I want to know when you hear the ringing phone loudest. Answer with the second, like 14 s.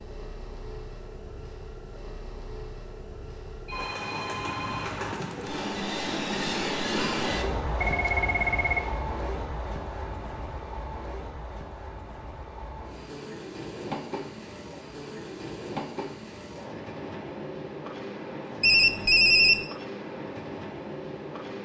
19 s.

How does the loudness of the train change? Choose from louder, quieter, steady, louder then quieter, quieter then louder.
louder then quieter.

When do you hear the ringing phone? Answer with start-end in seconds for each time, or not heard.
3.6-5.6, 7.8-8.9, 18.6-19.6.